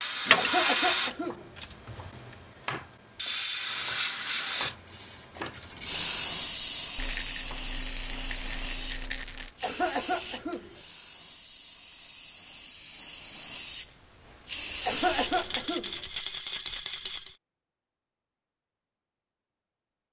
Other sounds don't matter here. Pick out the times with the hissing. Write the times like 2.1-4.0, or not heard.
0.0-15.5.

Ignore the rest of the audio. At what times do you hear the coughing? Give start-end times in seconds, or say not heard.
0.3-1.5, 9.6-10.8, 14.8-16.0.